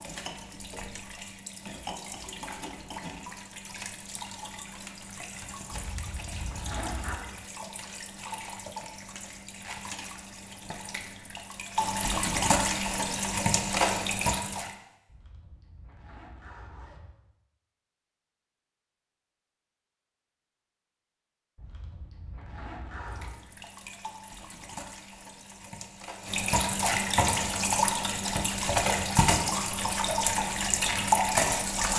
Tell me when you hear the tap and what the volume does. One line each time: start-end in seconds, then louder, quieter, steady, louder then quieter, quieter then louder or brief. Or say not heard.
0.0-14.8 louder
23.1-31.9 louder.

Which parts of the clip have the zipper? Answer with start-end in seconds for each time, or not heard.
5.7-7.2, 15.1-17.1, 21.6-23.3.